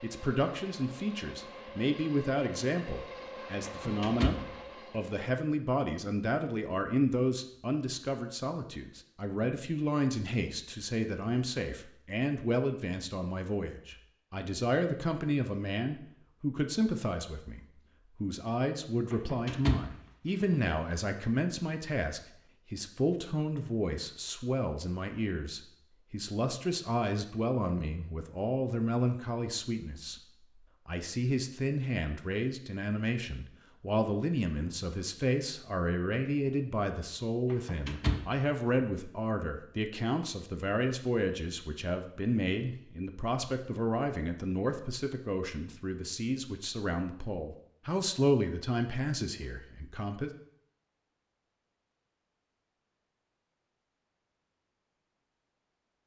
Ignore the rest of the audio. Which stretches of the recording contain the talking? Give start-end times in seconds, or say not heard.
0.0-17.6, 18.2-50.3.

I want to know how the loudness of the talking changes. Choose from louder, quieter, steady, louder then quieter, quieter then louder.
steady.